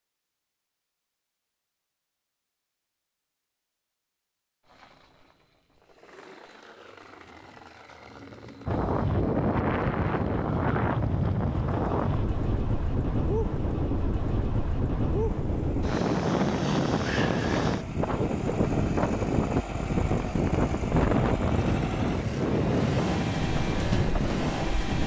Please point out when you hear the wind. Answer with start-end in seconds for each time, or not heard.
8.7-25.0.